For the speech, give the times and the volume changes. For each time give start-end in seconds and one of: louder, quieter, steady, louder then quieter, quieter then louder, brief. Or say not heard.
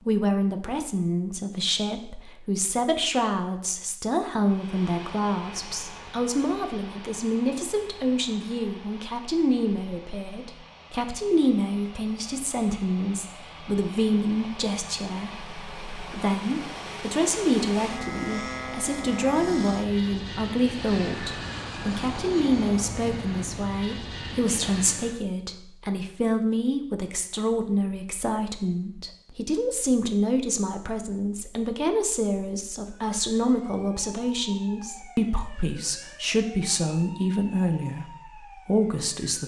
0.1-39.4 steady.